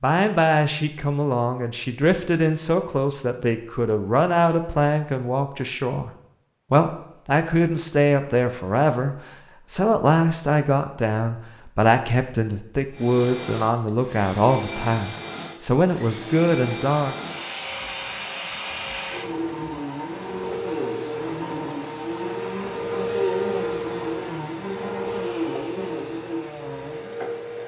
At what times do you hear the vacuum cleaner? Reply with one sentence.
You can hear the vacuum cleaner from 12.9 to 27.6 s.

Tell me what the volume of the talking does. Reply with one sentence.
The loudness of the talking stays about the same.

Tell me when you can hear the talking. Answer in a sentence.
The talking can be heard from 0.0 to 6.1 s and from 6.7 to 17.1 s.